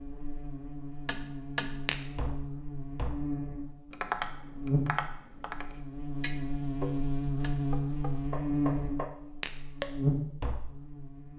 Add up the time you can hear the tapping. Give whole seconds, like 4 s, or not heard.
10 s.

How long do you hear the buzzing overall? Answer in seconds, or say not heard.
11 s.